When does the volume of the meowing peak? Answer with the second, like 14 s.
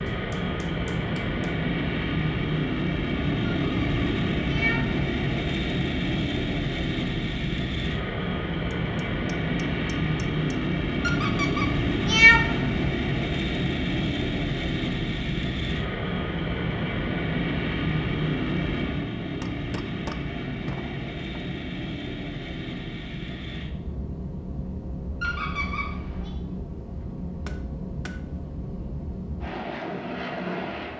12 s.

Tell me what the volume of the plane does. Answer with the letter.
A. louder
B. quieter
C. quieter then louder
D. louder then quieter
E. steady
B.